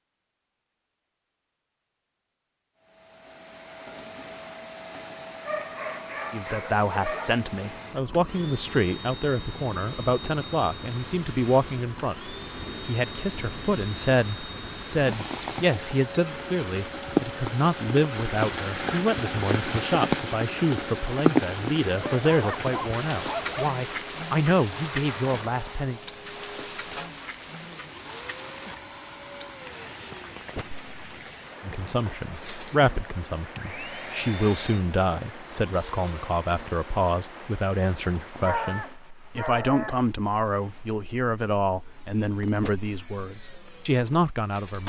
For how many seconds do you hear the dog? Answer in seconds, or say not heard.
5 s.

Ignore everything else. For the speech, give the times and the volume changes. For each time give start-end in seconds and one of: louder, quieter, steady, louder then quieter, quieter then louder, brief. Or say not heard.
6.3-26.0 steady
31.6-44.8 steady.